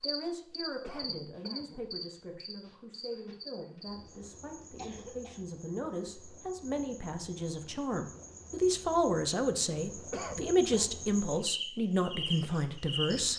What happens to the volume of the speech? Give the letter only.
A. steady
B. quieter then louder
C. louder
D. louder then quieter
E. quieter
C.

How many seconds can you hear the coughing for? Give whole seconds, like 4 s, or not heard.
3 s.